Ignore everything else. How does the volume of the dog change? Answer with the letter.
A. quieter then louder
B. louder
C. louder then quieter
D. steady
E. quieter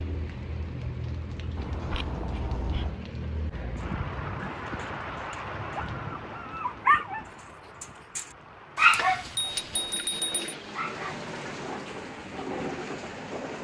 C.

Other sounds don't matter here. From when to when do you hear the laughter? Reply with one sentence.
The laughter can't be heard in this clip.